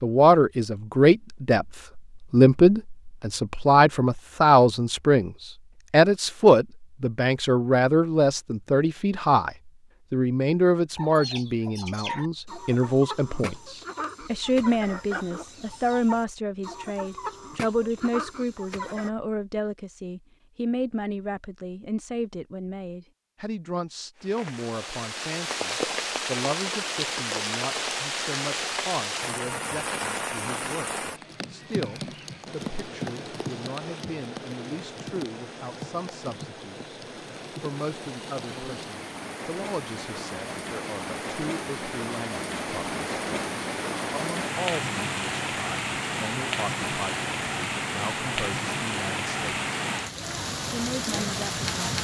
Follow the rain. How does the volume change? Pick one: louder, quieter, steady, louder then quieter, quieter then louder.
quieter then louder.